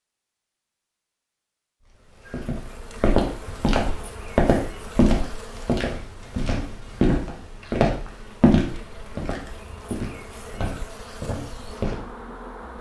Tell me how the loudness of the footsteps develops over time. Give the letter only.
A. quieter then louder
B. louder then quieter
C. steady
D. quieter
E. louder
D.